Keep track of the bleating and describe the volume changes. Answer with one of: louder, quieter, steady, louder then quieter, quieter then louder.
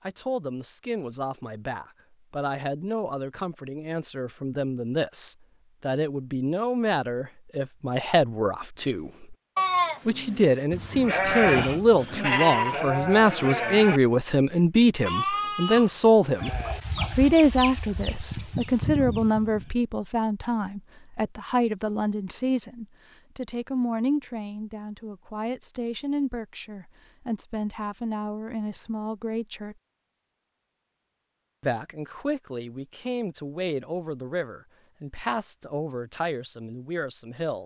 quieter.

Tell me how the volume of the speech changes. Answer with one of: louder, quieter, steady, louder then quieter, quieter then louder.
louder then quieter.